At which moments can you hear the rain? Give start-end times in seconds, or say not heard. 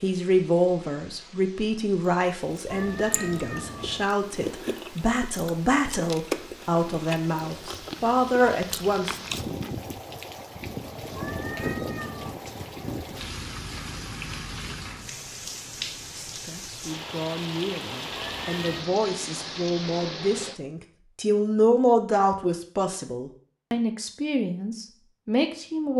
0.0-20.6.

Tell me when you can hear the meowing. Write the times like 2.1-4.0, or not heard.
2.6-4.1, 11.2-12.4, 18.1-19.0.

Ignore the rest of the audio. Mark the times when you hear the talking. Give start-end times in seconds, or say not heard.
0.0-9.2, 16.1-25.9.